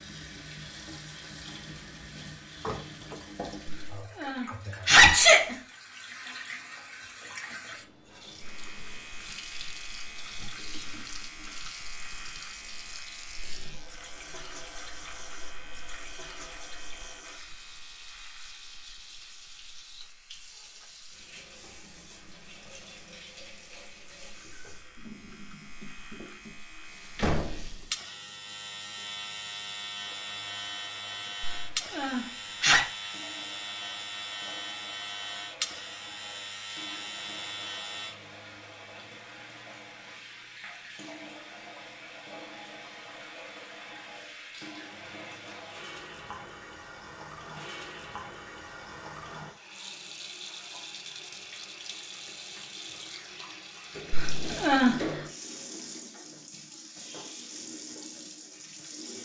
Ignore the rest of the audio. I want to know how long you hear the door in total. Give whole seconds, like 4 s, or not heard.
3 s.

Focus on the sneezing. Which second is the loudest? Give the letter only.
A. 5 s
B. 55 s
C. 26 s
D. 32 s
A.